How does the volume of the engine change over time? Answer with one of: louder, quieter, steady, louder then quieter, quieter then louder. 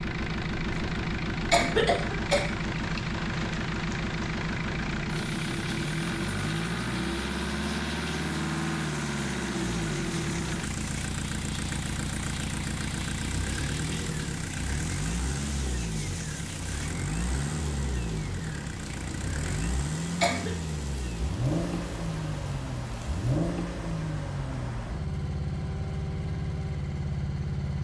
steady.